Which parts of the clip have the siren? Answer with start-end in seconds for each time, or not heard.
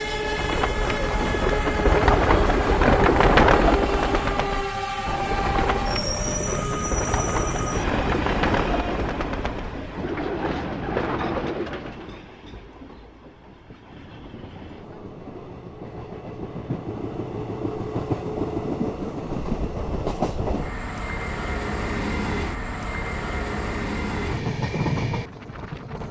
not heard.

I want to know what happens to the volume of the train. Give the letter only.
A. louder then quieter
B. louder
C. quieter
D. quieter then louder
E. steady
D.